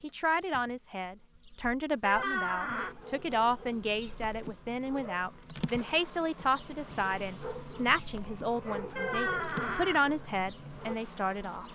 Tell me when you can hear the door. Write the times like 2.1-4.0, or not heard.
2.0-3.0, 8.9-10.1.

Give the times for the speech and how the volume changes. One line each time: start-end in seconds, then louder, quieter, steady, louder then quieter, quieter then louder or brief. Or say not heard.
0.0-11.7 steady.